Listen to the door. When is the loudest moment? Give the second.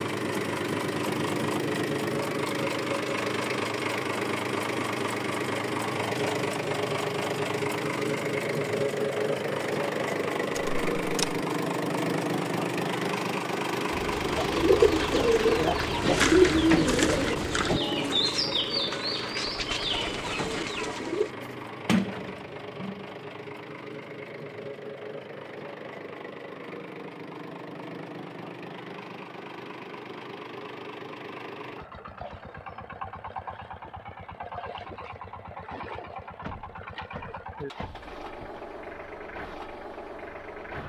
22 s.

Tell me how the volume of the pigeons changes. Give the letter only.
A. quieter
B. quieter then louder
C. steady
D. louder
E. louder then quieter
A.